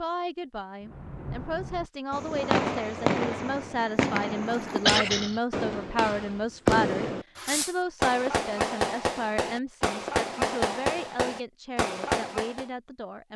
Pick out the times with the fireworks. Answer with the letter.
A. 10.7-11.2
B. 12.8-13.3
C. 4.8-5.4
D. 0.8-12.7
D.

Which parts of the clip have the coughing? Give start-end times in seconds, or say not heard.
4.8-5.4.